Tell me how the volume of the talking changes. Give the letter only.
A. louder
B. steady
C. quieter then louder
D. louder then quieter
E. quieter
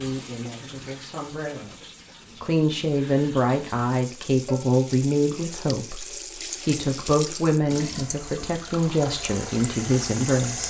A.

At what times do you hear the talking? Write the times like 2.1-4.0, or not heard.
0.0-10.6.